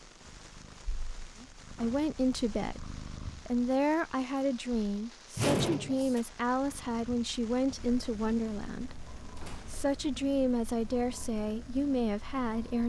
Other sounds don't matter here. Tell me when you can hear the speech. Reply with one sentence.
The speech can be heard from 1.4 to 12.8 s.